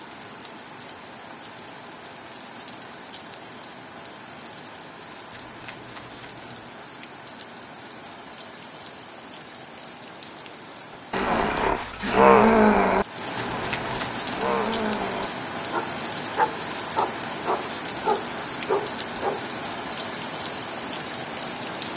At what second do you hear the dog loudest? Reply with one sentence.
The volume of the dog peaks at 12 seconds.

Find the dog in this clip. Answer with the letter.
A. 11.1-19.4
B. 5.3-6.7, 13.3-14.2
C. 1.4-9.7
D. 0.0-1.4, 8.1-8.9
A.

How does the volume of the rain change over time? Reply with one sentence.
The loudness of the rain goes up.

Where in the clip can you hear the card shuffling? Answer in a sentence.
The card shuffling can be heard from 5.3 to 6.7 s and from 13.3 to 14.2 s.